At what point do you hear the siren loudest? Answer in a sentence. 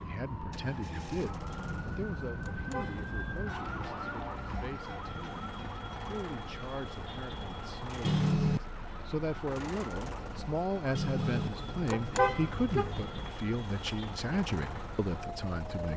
The volume of the siren peaks at 4 seconds.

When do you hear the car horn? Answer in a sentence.
You can hear the car horn from 1.5 to 3.0 s, from 8.0 to 8.6 s and from 10.9 to 13.3 s.